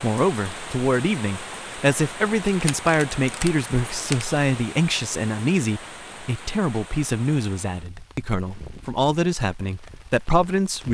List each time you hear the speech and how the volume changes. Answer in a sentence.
You can hear the speech from 0.0 to 10.8 s, at a steady volume.